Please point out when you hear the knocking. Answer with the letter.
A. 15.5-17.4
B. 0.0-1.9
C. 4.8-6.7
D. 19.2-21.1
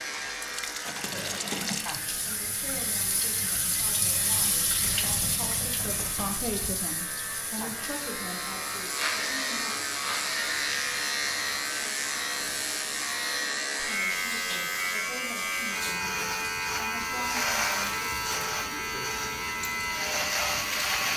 C.